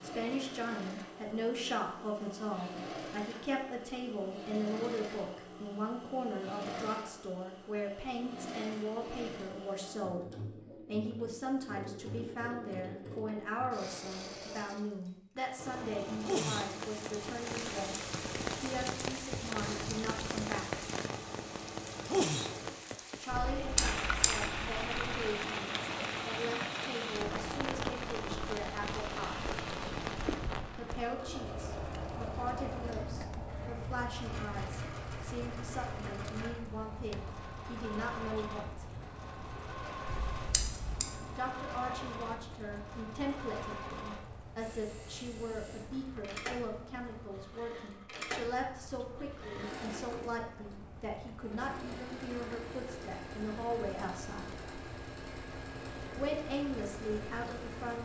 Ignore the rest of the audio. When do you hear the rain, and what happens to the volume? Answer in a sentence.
The rain can be heard from 16.1 to 57.9 s, getting quieter.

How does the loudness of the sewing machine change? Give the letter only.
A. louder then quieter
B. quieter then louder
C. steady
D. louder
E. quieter
C.